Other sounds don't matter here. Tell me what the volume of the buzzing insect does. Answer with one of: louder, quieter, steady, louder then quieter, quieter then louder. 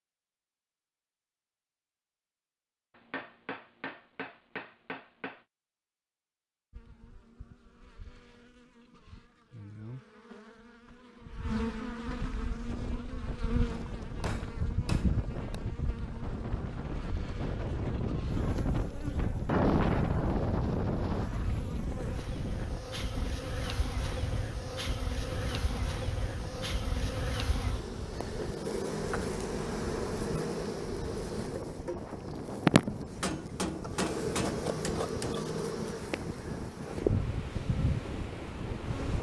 louder.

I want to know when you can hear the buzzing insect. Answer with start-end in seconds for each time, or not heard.
6.7-39.1.